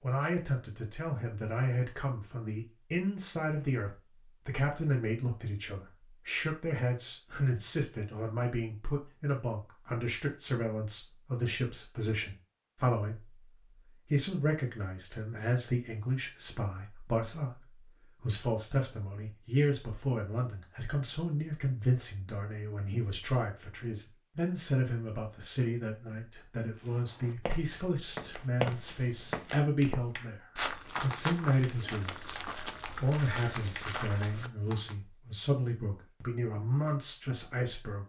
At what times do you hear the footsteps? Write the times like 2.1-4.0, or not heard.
26.8-35.0.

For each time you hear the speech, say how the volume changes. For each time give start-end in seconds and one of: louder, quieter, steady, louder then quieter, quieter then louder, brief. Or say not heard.
0.0-38.0 steady.